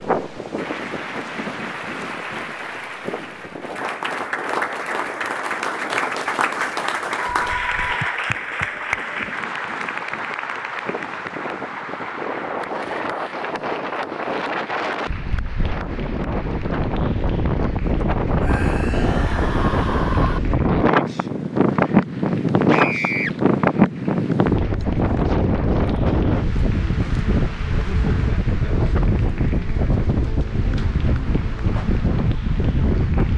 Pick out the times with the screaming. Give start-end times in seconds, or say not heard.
7.3-8.2, 18.4-20.4, 22.6-23.4.